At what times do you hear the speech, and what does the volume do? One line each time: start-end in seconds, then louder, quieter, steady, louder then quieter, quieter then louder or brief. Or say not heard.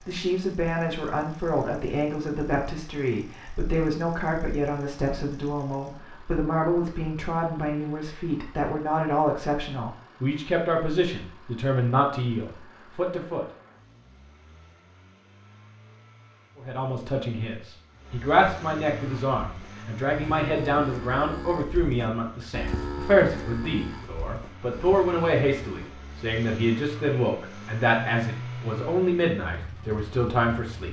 0.1-13.4 steady
16.6-30.8 steady.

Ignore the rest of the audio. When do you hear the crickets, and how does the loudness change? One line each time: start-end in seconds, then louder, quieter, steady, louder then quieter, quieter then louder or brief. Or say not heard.
not heard.